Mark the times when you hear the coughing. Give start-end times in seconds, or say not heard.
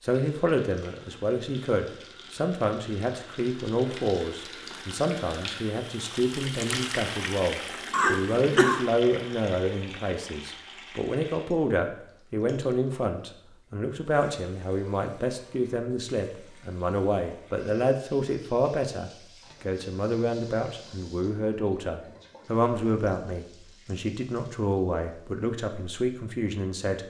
7.9-8.8.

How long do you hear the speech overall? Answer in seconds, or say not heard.
27 s.